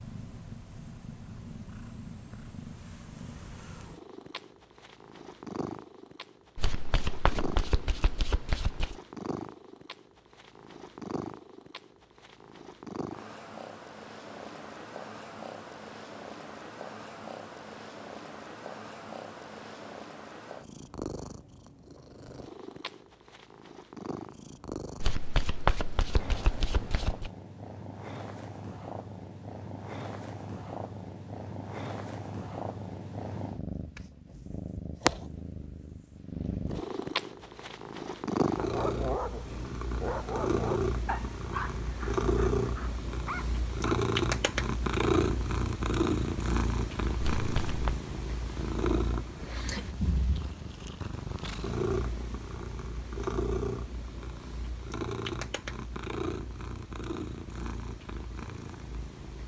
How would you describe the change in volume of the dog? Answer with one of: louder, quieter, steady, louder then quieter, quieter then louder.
quieter then louder.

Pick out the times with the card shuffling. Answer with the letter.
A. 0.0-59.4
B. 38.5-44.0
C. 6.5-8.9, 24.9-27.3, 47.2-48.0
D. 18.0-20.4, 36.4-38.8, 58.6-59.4
C.